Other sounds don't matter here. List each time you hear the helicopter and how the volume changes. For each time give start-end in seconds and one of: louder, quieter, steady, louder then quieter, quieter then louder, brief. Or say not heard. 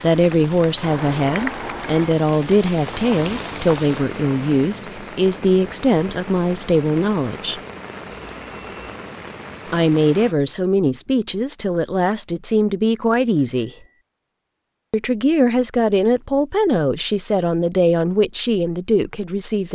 not heard.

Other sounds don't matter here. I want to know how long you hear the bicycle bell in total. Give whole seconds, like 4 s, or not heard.
3 s.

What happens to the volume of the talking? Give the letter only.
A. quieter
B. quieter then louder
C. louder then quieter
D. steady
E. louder
D.